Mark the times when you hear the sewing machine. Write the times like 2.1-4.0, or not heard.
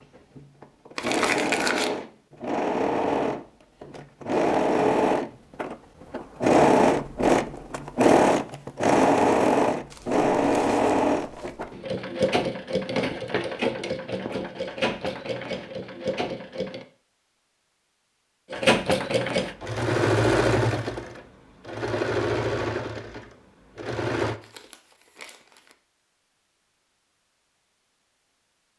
0.0-16.9, 18.5-24.4.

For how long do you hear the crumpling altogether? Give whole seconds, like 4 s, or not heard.
4 s.